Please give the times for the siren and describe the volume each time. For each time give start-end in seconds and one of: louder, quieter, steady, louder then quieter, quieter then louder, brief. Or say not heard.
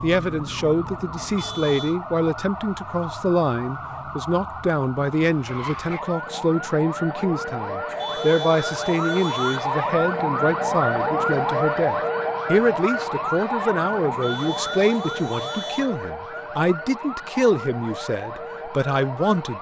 0.0-19.5 louder then quieter.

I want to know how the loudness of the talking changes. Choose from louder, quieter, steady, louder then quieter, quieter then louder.
steady.